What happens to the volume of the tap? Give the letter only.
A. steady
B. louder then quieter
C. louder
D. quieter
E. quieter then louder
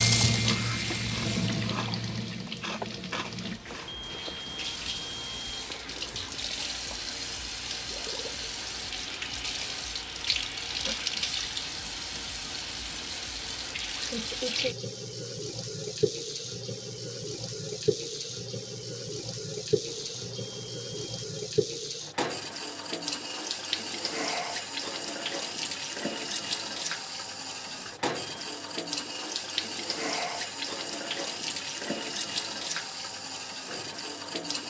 A.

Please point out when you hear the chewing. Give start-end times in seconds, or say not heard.
0.0-3.9.